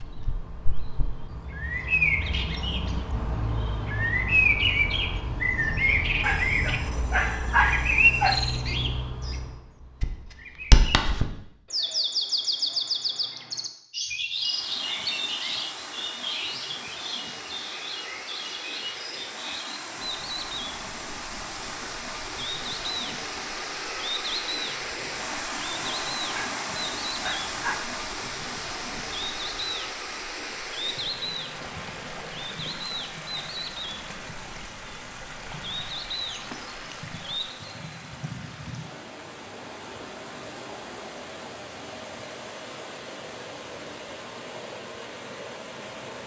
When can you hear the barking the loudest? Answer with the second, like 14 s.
8 s.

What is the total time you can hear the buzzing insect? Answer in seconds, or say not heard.
not heard.